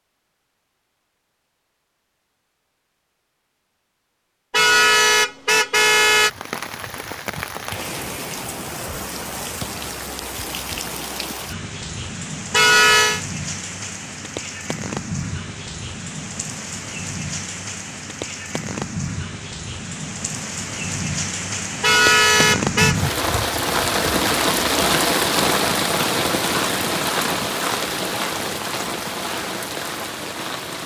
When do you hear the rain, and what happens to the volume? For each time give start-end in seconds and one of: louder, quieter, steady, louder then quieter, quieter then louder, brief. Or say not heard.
6.1-30.8 louder.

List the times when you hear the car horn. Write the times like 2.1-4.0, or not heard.
4.5-6.3, 12.5-13.2, 21.8-22.9.